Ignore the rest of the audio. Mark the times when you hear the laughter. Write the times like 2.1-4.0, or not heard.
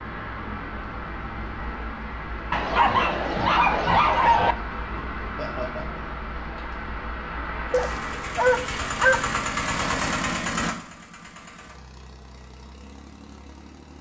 5.3-6.0.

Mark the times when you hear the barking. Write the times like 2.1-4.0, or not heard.
2.5-4.5, 7.7-9.2.